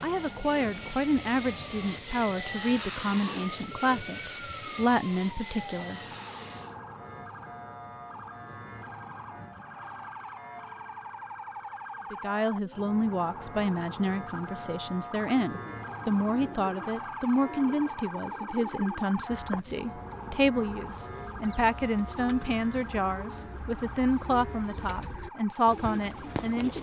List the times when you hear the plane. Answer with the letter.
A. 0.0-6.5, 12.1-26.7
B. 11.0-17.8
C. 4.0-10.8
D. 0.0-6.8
D.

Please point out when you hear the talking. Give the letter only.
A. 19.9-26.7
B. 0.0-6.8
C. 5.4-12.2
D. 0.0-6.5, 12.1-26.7
D.